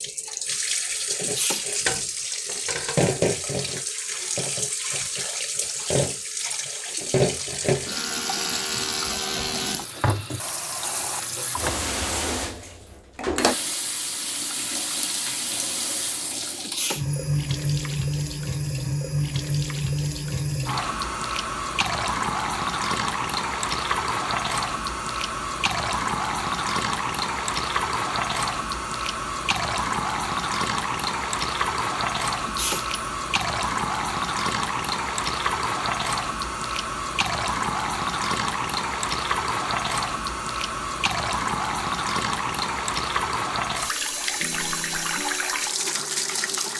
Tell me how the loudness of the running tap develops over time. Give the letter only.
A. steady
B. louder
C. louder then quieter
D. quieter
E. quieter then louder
A.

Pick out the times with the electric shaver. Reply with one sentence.
The electric shaver can't be heard in this clip.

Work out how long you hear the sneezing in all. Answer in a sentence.
You can hear the sneezing for 2 seconds altogether.